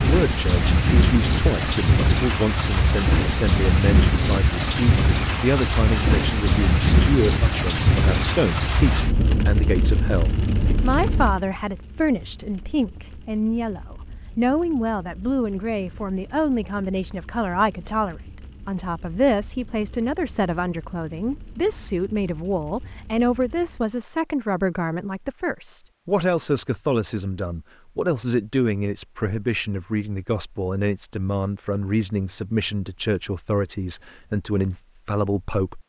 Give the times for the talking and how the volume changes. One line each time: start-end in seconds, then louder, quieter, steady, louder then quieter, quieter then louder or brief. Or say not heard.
0.0-35.8 steady.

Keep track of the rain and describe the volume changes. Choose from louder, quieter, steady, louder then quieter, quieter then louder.
quieter.